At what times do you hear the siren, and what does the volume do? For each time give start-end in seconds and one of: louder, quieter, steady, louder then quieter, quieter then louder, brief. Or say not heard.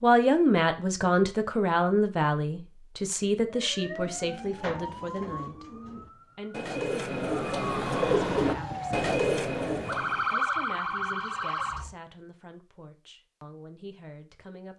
3.5-11.9 quieter then louder.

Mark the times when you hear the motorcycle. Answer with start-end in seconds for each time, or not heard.
not heard.